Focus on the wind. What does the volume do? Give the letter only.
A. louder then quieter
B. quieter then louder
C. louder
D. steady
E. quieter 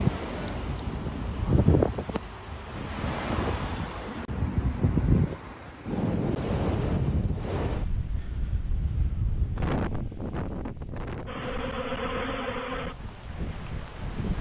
E.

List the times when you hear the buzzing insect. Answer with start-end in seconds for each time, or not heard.
0.1-2.8, 11.2-12.9.